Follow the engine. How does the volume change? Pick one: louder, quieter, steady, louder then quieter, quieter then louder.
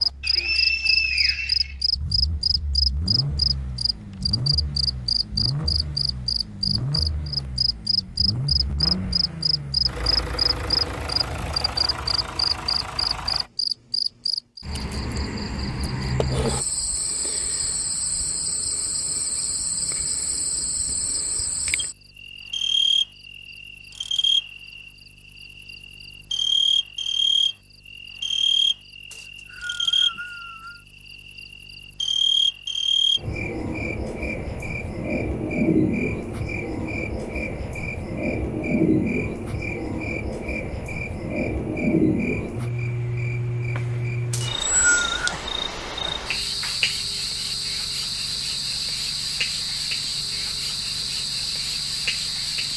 louder.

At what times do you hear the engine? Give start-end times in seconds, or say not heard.
0.0-13.5.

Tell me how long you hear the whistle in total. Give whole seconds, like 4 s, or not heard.
4 s.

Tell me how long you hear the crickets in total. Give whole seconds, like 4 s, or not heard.
53 s.